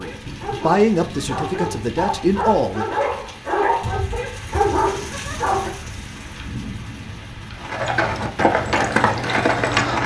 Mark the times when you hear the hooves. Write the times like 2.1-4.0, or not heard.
7.5-10.0.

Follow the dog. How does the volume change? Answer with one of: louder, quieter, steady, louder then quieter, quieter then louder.
louder.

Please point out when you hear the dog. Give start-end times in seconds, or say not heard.
0.0-5.7.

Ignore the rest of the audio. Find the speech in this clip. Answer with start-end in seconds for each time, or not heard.
0.0-2.9.